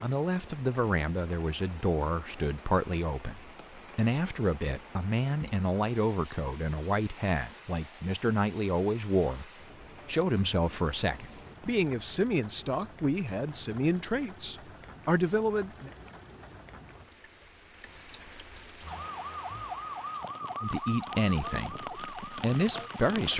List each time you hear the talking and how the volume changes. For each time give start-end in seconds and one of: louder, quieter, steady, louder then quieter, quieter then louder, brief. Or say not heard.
0.0-15.9 steady
20.6-23.3 brief.